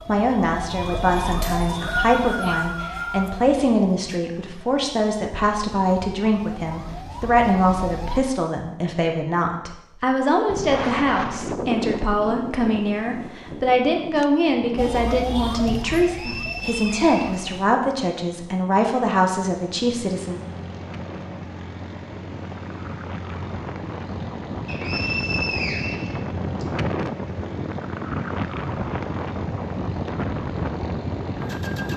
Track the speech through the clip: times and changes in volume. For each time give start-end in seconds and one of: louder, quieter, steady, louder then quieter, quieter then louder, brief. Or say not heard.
0.1-20.4 steady.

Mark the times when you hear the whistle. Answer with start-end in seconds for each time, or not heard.
1.4-3.3, 16.0-17.5, 24.6-26.6.